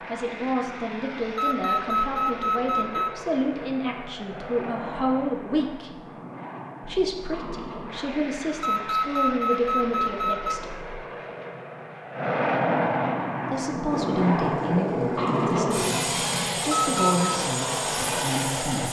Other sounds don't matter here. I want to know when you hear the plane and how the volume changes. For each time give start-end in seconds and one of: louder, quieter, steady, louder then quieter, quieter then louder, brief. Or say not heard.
0.0-18.8 louder.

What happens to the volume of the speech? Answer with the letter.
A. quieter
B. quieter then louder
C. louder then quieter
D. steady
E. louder
D.